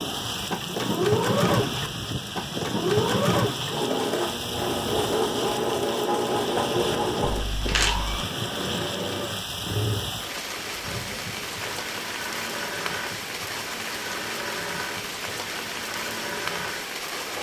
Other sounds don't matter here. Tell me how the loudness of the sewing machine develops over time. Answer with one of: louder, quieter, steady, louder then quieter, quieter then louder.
quieter.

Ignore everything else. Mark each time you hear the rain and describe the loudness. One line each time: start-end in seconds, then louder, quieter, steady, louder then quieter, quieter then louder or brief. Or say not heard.
0.0-17.3 steady.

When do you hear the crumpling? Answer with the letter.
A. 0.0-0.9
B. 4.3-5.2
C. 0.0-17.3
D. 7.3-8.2
D.